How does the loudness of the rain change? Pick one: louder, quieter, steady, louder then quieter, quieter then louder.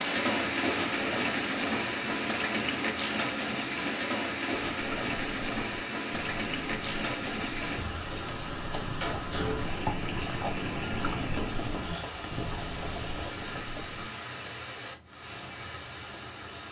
quieter.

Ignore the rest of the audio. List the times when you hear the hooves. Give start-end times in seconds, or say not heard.
4.7-14.1.